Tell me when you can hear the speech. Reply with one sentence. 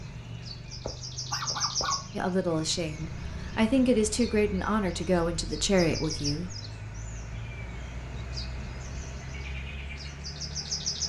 You can hear the speech from 2.1 to 6.5 s.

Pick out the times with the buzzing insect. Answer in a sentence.
The buzzing insect can't be heard in this clip.